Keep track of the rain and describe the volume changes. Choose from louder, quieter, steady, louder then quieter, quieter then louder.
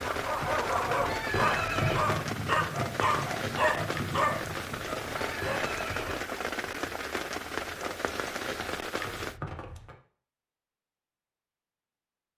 steady.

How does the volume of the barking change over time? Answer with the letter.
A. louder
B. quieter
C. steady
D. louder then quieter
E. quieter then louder
B.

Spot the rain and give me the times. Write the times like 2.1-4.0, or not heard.
0.0-9.4.